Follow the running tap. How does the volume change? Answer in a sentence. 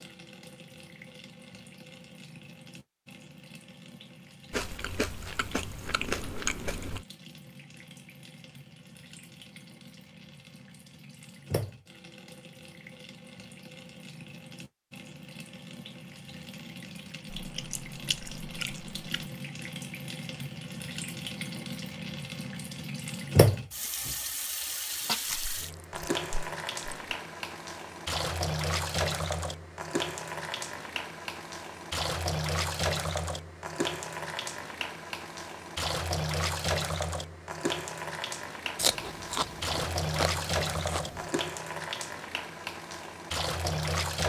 The volume of the running tap goes up.